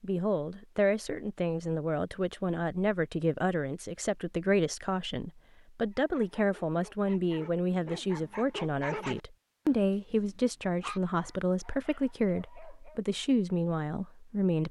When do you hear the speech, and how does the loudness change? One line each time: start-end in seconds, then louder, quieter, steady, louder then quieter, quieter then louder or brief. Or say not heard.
0.0-14.6 steady.